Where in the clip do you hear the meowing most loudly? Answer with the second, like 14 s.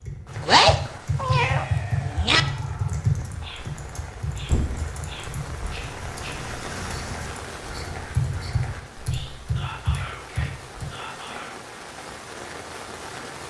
1 s.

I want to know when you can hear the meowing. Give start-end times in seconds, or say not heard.
0.5-2.4.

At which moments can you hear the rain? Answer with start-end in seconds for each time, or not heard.
0.0-13.4.